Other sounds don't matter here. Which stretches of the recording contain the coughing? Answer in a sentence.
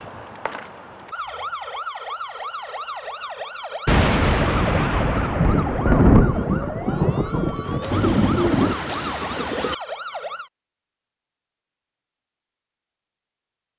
The coughing can't be heard in this clip.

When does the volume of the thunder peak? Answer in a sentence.
The loudest moment of the thunder is at 6 seconds.